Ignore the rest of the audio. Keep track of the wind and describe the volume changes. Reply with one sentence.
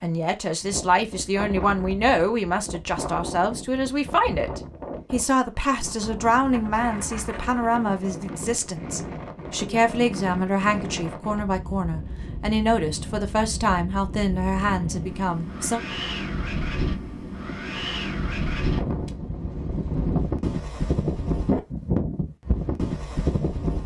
The loudness of the wind goes up.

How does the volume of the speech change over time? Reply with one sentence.
The loudness of the speech stays about the same.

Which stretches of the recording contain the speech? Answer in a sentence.
You can hear the speech from 0.0 to 15.8 s.